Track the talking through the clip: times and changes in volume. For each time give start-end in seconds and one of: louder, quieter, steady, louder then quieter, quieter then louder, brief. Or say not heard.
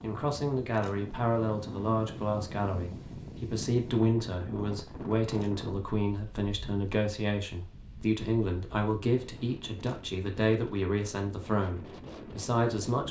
0.0-13.0 steady.